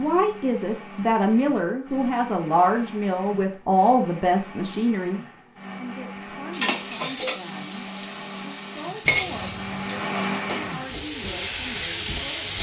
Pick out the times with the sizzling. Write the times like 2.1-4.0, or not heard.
6.5-12.5.